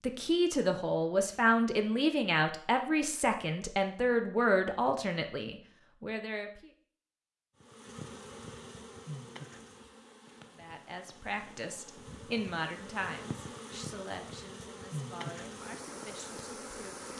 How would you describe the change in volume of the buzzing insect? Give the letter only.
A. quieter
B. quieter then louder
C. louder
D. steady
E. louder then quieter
B.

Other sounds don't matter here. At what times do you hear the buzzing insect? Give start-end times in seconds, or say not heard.
7.6-17.1.